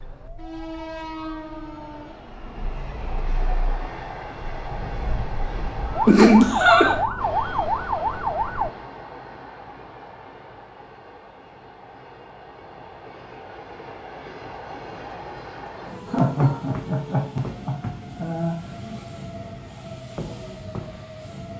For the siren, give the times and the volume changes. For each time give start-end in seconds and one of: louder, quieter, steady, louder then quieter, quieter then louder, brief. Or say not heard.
0.0-8.7 louder.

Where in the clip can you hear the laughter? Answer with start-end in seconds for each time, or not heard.
6.0-7.0, 16.1-18.6.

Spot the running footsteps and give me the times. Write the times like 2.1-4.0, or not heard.
not heard.